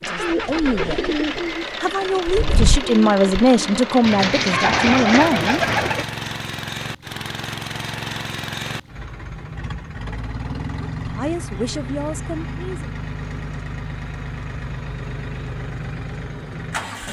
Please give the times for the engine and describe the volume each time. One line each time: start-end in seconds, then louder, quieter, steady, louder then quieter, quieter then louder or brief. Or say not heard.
0.0-17.0 steady.